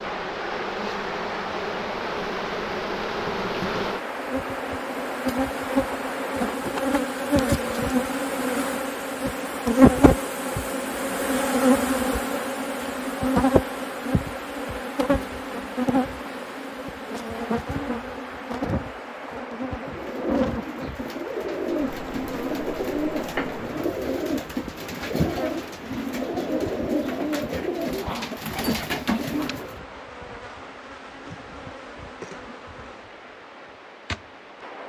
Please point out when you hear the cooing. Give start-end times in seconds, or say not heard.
19.9-29.8.